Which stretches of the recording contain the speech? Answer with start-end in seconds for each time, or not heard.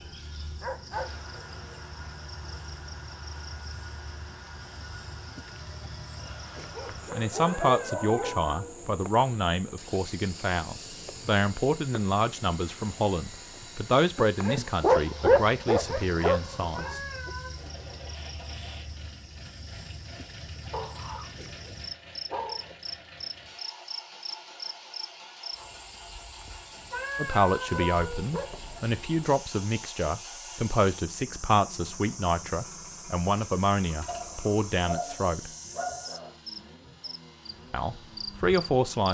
7.1-17.0, 27.1-35.5, 37.7-39.0.